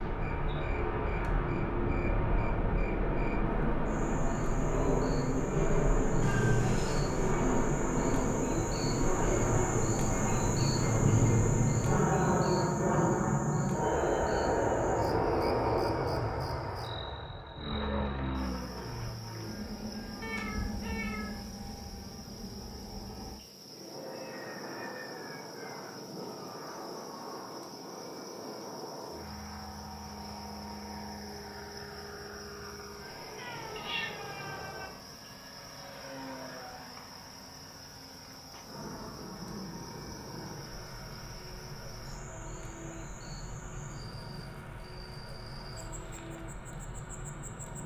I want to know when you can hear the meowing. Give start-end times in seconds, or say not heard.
6.2-7.1, 20.2-21.6, 33.4-34.9.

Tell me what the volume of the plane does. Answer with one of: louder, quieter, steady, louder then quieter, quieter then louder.
quieter.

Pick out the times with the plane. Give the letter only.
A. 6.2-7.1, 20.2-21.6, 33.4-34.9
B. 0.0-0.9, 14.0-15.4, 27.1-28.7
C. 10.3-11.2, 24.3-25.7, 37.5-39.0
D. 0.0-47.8
D.